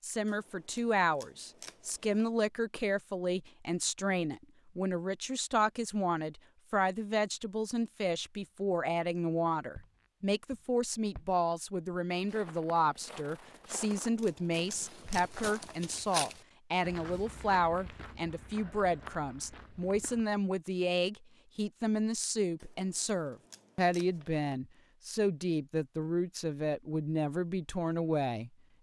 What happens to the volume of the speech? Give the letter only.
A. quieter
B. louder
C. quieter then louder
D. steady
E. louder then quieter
D.